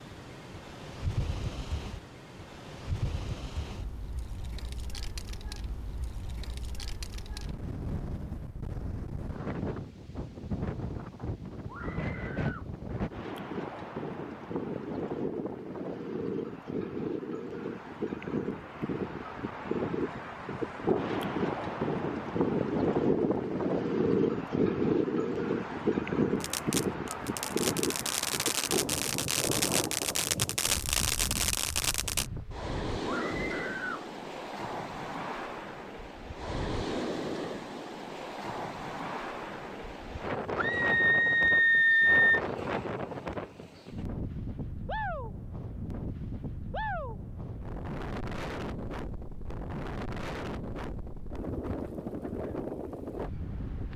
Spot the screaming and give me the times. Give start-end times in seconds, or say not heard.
11.7-12.7, 33.0-34.0, 40.5-42.4.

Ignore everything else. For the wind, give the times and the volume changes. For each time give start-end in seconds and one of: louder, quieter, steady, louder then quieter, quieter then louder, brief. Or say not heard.
0.0-53.9 louder then quieter.